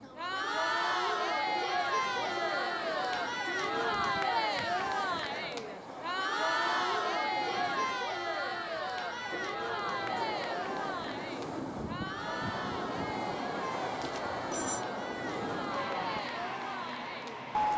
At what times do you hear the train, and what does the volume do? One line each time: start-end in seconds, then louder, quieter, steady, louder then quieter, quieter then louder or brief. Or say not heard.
0.0-17.7 louder.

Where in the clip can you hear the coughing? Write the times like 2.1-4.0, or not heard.
not heard.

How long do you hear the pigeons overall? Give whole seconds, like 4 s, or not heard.
not heard.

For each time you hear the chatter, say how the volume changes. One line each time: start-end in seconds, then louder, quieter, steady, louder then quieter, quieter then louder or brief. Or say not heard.
0.0-17.7 quieter.